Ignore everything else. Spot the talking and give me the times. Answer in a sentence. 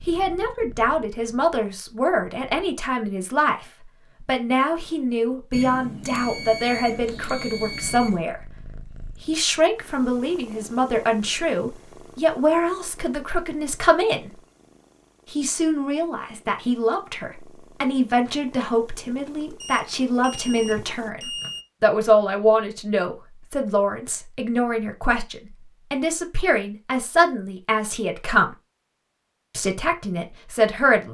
The talking can be heard from 0.1 to 14.3 s, from 15.3 to 28.6 s and from 29.6 to 31.0 s.